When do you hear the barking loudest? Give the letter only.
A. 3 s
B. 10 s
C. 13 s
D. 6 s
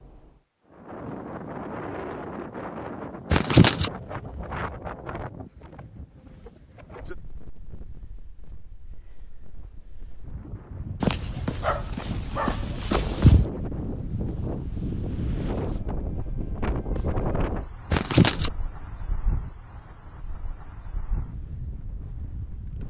C.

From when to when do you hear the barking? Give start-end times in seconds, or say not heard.
11.0-13.4.